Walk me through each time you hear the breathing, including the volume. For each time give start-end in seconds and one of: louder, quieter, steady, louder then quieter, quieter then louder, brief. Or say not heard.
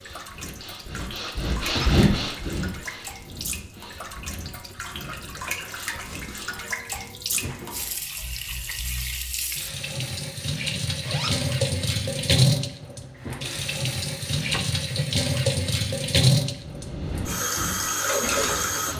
0.0-6.7 louder then quieter
16.5-18.8 brief.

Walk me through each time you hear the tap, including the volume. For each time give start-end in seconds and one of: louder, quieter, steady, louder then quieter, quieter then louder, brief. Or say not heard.
0.0-18.9 louder.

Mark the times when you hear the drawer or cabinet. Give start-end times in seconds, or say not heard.
1.6-2.0, 7.3-8.2, 13.2-14.7.